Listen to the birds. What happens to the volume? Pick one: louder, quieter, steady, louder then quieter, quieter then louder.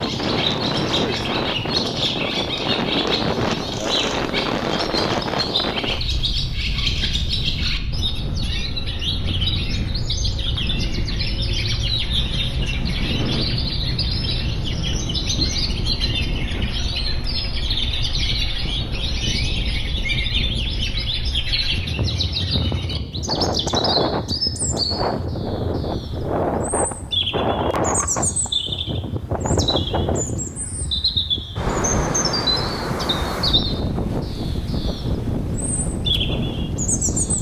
steady.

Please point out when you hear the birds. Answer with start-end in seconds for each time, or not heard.
0.0-37.3.